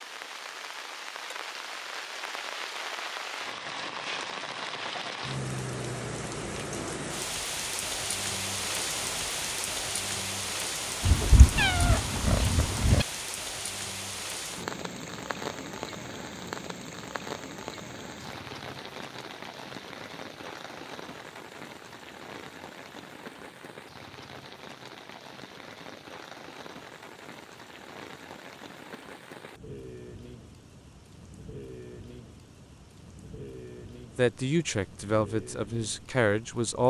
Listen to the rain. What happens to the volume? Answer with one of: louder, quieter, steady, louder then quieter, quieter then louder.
quieter.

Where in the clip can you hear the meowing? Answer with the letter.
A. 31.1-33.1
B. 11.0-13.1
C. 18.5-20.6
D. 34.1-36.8
B.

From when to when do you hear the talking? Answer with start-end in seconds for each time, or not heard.
34.1-36.8.